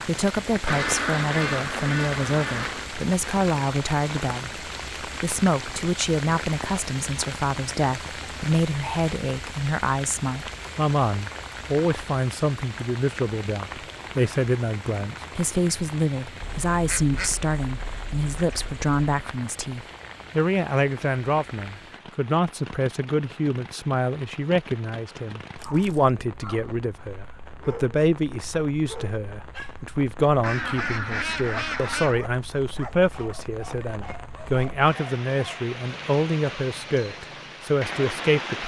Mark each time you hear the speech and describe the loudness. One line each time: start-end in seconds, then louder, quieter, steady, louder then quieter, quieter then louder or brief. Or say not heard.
0.1-38.6 steady.